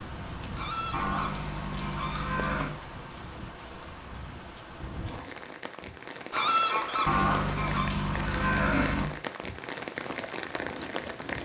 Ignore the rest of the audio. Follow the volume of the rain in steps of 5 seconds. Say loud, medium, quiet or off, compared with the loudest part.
medium, loud, loud.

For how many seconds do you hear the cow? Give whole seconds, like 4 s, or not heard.
4 s.